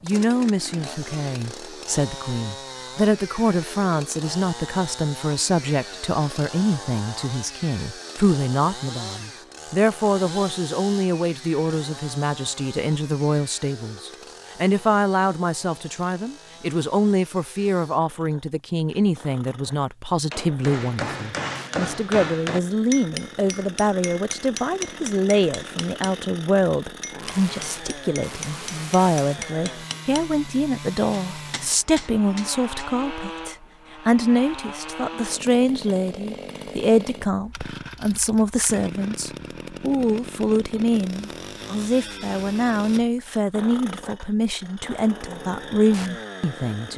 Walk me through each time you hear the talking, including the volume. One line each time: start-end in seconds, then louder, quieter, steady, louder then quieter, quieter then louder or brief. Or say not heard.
0.0-46.9 steady.